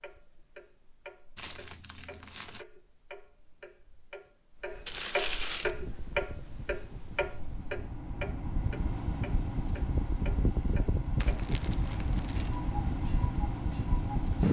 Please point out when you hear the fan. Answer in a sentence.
The fan can be heard from 5.6 to 14.4 s.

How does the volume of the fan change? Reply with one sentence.
The loudness of the fan goes up.